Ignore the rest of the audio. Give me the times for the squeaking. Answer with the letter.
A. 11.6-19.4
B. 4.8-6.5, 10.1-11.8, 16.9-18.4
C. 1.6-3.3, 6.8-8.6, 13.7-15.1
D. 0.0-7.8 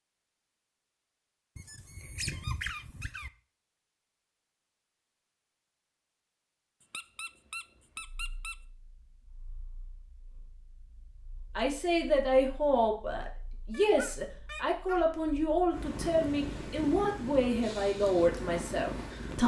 C.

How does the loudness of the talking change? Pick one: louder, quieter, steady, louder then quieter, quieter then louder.
steady.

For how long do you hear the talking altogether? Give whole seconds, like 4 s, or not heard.
8 s.